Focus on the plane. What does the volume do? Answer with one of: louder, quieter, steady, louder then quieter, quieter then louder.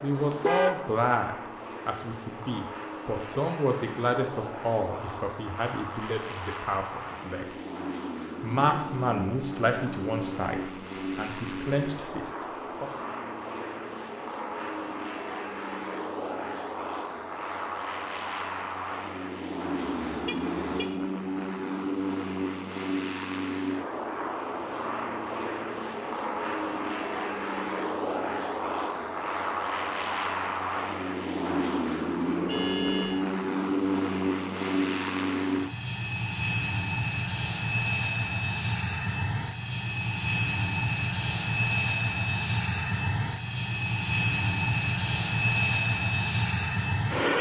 louder.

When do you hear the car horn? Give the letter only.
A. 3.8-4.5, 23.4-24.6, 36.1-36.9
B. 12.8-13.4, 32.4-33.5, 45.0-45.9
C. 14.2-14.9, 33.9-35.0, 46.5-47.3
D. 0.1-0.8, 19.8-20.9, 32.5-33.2
D.